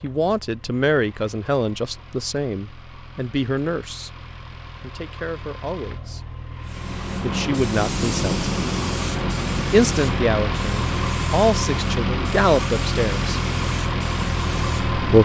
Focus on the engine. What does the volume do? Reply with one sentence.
The volume of the engine goes up.